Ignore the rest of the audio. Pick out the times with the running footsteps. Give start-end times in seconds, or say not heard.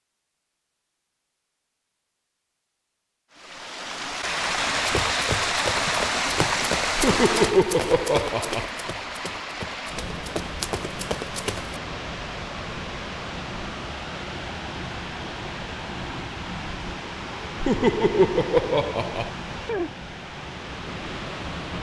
4.8-11.8.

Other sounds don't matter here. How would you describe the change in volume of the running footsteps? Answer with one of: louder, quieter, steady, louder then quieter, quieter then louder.
quieter then louder.